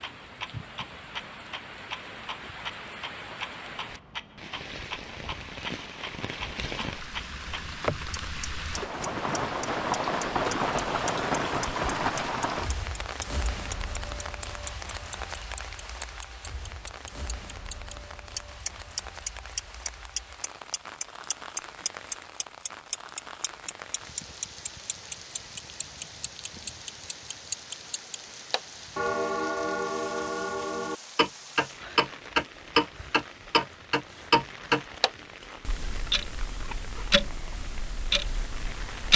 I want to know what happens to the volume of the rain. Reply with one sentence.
The loudness of the rain goes up, then down.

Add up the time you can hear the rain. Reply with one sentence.
You can hear the rain for 39 seconds altogether.